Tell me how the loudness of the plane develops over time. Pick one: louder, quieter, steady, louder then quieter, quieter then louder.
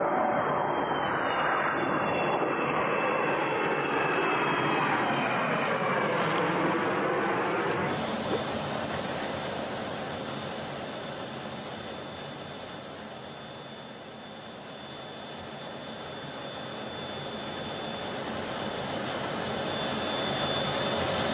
quieter then louder.